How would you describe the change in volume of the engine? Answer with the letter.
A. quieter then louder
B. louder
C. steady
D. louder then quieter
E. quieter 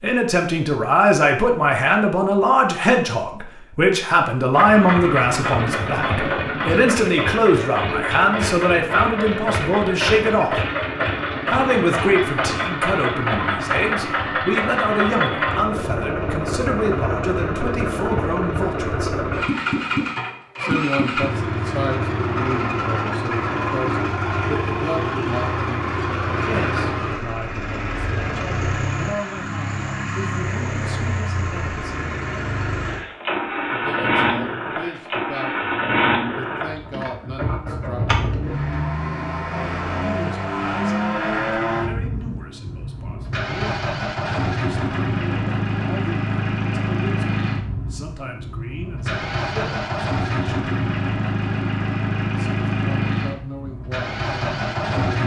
C.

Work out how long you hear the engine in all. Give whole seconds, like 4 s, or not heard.
51 s.